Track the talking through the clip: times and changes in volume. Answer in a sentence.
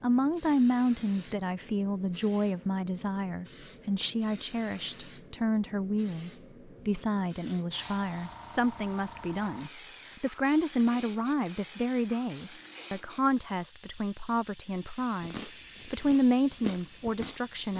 You can hear the talking from 0.0 to 17.7 s, at a steady volume.